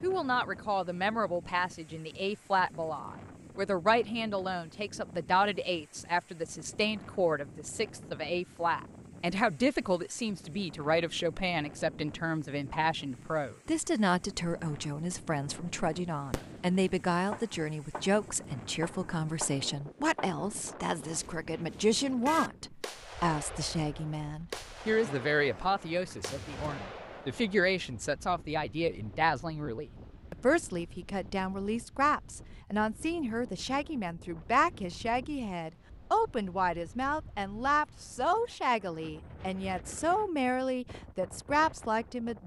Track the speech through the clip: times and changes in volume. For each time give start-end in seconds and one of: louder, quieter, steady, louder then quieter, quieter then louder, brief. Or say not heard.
0.0-42.4 steady.